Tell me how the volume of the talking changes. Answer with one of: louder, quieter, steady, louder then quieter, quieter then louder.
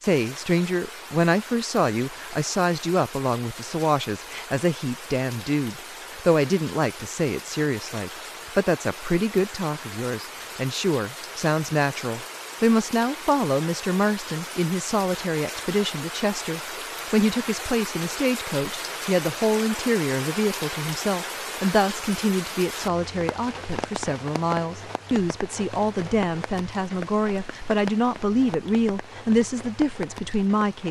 steady.